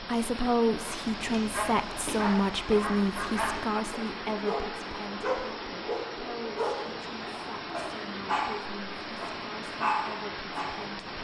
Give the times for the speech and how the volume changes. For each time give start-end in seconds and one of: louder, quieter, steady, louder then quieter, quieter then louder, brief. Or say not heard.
0.0-11.1 quieter.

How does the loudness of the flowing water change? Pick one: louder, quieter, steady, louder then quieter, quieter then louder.
steady.